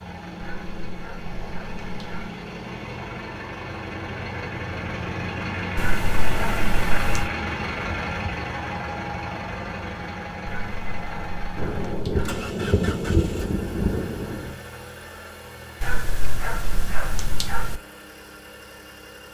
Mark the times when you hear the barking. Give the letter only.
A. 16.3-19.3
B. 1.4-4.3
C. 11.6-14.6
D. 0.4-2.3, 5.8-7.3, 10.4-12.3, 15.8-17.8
D.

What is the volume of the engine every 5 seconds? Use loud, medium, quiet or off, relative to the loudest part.
medium, loud, medium, quiet.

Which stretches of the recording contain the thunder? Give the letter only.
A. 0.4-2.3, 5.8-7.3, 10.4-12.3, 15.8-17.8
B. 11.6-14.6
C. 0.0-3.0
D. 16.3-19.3
B.